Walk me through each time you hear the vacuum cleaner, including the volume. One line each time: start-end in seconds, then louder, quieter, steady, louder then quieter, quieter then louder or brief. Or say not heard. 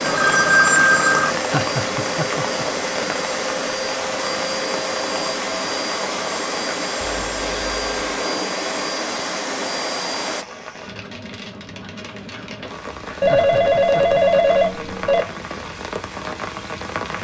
0.0-10.4 steady.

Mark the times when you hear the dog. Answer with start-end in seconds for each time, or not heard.
not heard.